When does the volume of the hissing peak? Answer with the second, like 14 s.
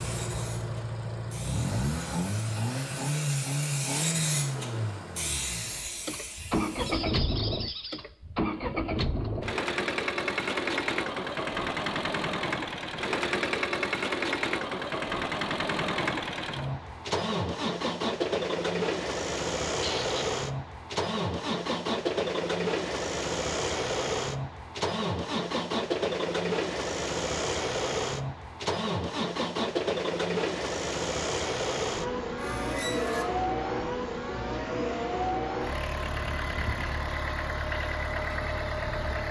4 s.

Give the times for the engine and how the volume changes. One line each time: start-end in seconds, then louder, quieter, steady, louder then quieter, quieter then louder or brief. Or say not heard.
0.0-39.2 steady.